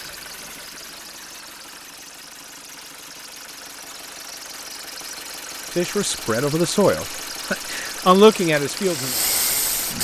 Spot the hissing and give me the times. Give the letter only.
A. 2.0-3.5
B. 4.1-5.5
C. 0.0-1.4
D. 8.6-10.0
D.